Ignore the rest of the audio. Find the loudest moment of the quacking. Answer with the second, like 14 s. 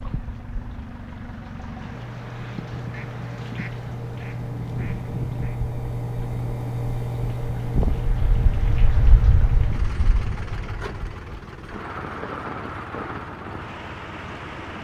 5 s.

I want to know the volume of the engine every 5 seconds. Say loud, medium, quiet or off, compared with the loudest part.
medium, loud, medium.